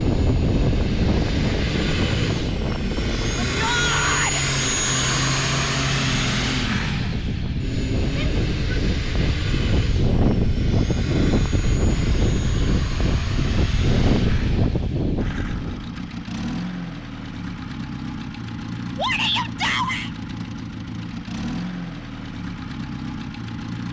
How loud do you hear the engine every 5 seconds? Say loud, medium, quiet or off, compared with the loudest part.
loud, loud, medium, medium, medium.